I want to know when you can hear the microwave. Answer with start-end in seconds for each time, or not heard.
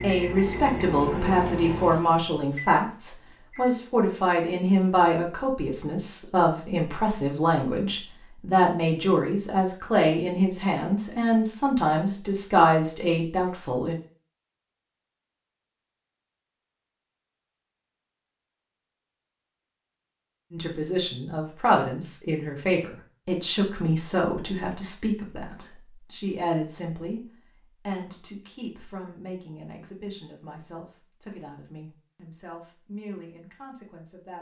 0.0-4.0.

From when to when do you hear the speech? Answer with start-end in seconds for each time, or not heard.
0.0-14.0, 20.5-27.2, 27.9-34.3.